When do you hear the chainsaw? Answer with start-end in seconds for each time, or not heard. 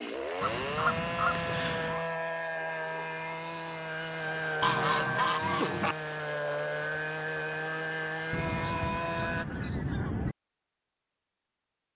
0.0-9.4.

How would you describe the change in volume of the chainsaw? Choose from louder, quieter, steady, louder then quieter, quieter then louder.
steady.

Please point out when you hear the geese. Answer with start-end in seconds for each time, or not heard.
0.4-2.0, 4.6-6.0, 8.3-10.3.